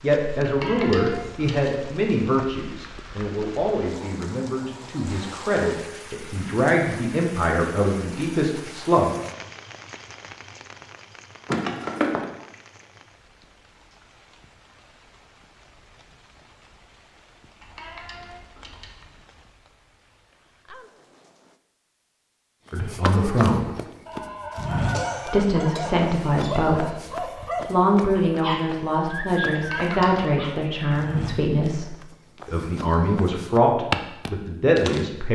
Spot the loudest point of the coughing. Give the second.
12 s.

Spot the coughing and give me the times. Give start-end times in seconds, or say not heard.
11.4-12.2, 24.9-26.6.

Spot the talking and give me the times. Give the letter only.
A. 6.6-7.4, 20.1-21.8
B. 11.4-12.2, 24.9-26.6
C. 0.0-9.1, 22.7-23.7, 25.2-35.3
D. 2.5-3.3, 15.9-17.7
C.